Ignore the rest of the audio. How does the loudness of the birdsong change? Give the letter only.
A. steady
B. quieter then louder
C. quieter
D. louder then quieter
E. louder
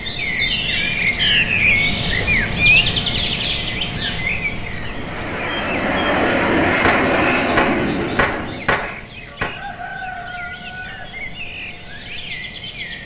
C.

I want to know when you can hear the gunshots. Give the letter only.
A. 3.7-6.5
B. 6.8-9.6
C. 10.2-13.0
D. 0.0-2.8
B.